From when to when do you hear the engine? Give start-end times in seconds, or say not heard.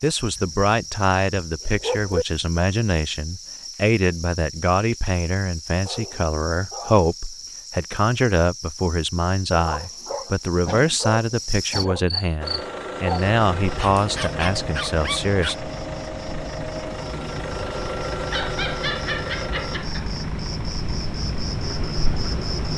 12.4-22.7.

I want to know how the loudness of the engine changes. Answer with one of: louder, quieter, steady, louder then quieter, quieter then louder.
quieter.